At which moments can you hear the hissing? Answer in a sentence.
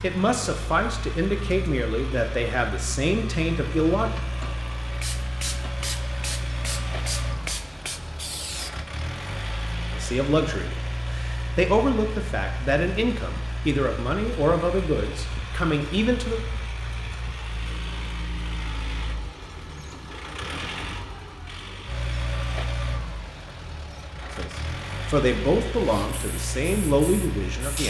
You can hear the hissing from 5.0 to 8.8 s and from 25.8 to 27.8 s.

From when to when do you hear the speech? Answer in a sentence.
You can hear the speech from 0.0 to 4.1 s, from 9.9 to 16.4 s and from 24.3 to 27.8 s.